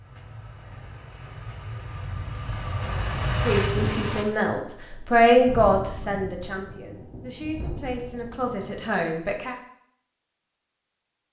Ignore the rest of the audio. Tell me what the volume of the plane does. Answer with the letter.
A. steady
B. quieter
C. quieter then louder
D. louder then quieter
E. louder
E.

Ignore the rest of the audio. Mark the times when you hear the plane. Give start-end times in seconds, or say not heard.
0.0-4.2.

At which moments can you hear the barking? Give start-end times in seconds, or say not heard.
not heard.